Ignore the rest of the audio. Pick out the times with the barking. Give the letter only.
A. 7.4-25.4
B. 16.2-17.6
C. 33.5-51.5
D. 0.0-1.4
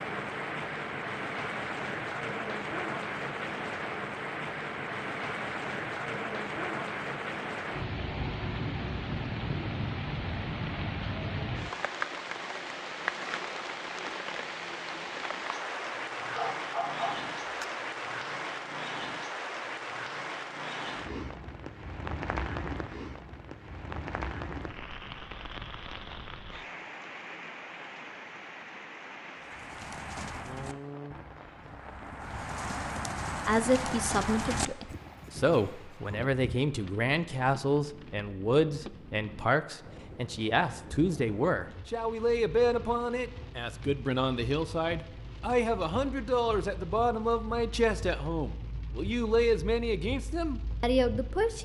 B.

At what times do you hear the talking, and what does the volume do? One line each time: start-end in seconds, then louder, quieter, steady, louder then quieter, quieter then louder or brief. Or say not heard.
33.5-51.5 steady.